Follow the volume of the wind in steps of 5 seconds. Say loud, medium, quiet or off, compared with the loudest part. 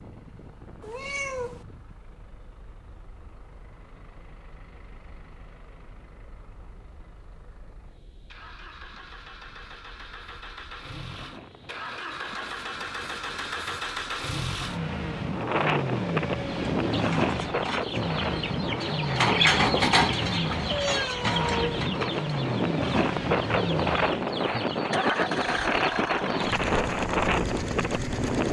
quiet, quiet, quiet, loud, loud, loud.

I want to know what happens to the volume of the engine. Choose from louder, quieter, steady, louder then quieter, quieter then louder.
louder.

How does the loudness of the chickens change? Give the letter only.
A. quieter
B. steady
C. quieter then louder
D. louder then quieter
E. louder
D.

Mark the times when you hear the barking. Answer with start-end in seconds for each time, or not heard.
not heard.